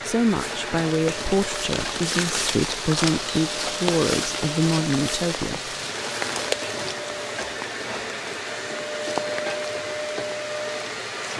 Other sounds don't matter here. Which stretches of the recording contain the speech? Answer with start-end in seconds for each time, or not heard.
0.0-5.8.